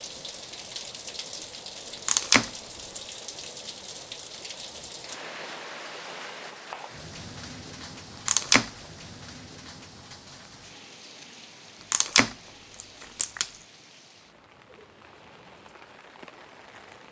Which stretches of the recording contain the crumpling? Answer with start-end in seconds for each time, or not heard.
2.0-3.0, 8.2-8.7, 11.9-13.5.